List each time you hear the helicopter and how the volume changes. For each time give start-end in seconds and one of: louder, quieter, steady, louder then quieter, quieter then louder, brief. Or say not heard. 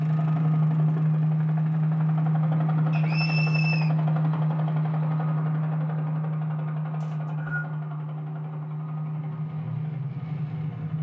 0.0-10.9 quieter.